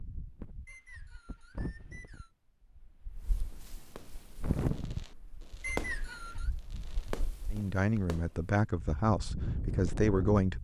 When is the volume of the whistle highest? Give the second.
6 s.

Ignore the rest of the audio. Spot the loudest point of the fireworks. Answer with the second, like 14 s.
6 s.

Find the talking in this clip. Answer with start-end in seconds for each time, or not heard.
7.5-10.5.